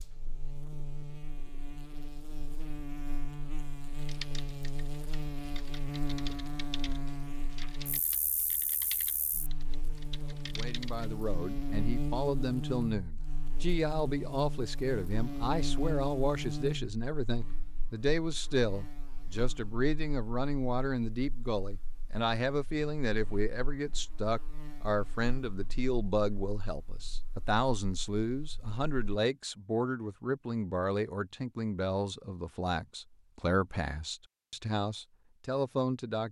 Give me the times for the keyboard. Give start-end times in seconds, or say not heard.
4.0-11.2.